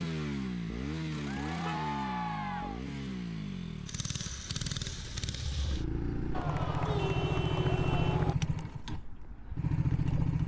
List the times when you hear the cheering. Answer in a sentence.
You can hear the cheering from 1.2 to 2.9 s and from 6.3 to 8.3 s.